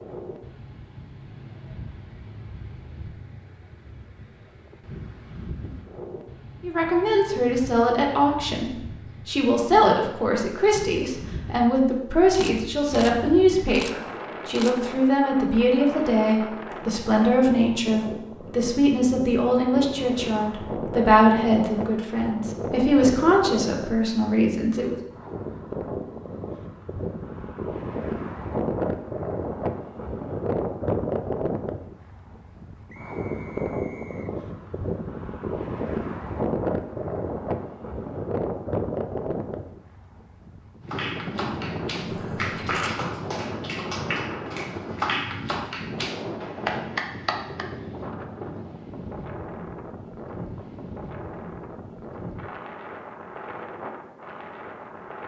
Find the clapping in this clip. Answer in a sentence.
The clapping can be heard from 40.9 to 47.6 s.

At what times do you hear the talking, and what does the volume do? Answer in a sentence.
You can hear the talking from 6.6 to 25.0 s, at a steady volume.